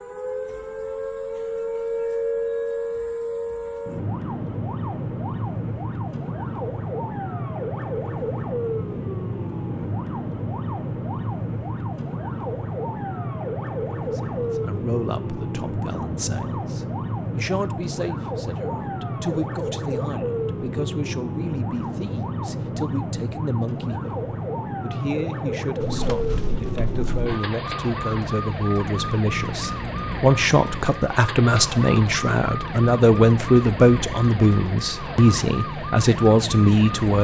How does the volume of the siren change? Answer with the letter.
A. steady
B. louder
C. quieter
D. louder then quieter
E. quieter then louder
A.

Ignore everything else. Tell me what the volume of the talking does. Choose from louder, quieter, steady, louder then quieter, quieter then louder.
louder.